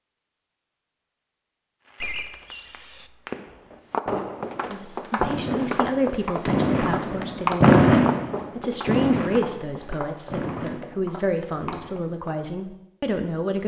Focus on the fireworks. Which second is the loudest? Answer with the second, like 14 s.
8 s.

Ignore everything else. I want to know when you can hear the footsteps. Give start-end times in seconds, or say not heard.
3.9-12.3.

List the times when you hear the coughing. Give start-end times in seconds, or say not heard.
2.0-3.3.